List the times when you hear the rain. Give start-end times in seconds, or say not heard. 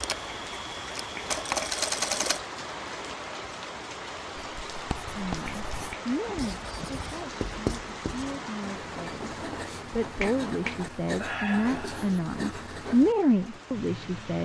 0.0-14.4.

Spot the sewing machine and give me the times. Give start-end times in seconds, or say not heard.
0.0-2.4.